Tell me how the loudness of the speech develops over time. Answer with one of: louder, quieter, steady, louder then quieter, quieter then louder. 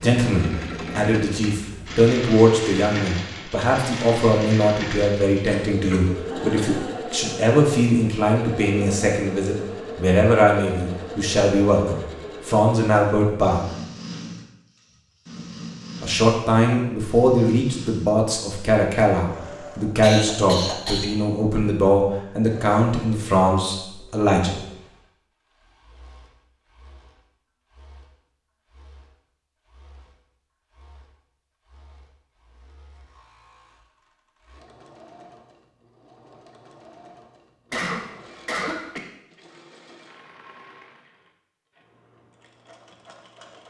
steady.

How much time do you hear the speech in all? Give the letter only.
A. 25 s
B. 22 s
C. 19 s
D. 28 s
B.